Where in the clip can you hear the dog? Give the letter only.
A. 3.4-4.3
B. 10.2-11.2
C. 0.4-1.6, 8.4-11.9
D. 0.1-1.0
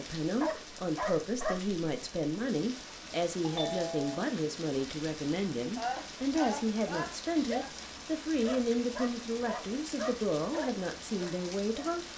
C.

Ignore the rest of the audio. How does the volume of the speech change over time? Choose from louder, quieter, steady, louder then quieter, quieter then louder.
steady.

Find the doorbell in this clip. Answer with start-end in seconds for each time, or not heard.
3.4-4.3.